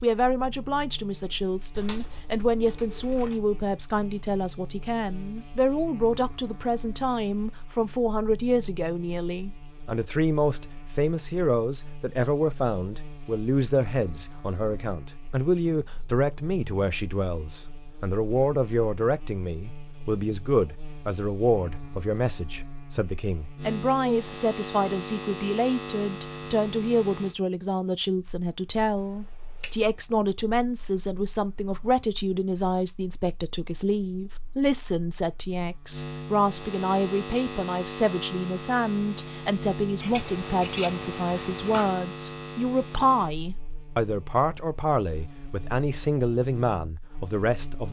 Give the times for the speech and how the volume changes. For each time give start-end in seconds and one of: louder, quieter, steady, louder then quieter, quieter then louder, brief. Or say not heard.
0.0-47.8 steady.